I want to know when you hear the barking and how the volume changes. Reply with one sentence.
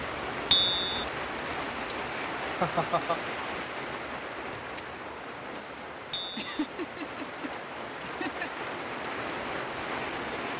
You can't hear the barking here.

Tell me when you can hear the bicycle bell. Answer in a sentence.
The bicycle bell can be heard from 0.5 to 1.1 s and from 6.1 to 6.7 s.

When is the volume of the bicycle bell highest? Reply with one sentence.
The loudest moment of the bicycle bell is at 1 second.